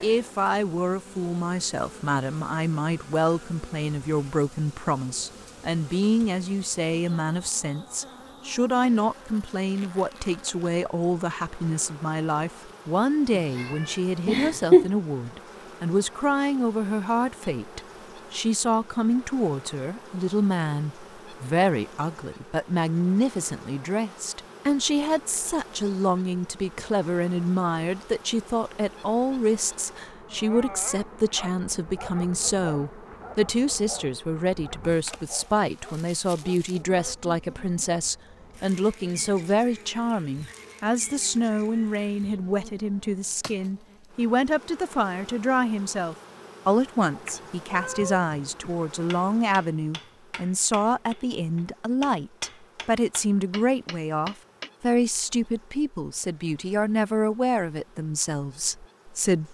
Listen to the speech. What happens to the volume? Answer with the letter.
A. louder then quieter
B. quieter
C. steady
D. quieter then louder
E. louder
C.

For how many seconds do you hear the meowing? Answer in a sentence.
You can hear the meowing for 3 seconds altogether.